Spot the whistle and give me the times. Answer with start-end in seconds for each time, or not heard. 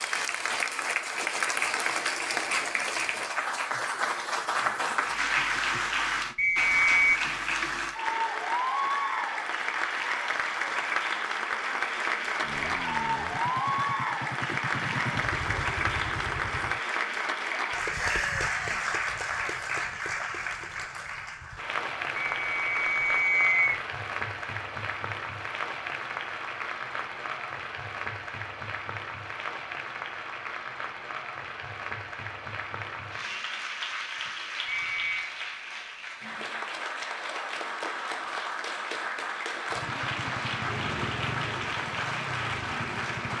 6.3-7.2, 22.4-23.8, 34.6-35.4.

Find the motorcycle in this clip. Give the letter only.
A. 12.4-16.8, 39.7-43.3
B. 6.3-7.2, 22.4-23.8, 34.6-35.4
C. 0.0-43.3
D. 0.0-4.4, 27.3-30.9
A.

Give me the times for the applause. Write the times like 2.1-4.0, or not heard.
0.0-43.3.